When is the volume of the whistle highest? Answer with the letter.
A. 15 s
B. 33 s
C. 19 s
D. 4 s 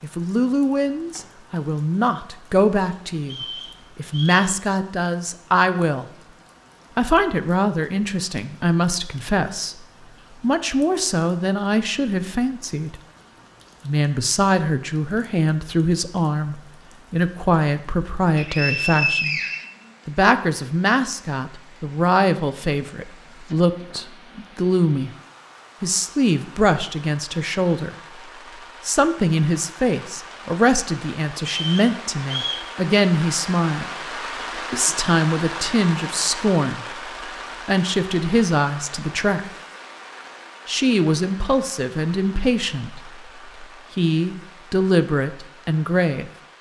C.